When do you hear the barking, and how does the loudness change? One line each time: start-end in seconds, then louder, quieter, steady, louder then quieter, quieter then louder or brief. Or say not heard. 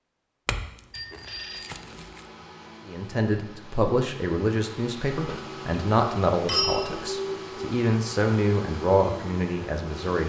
not heard.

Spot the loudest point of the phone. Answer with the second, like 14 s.
7 s.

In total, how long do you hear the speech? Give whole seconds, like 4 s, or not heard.
7 s.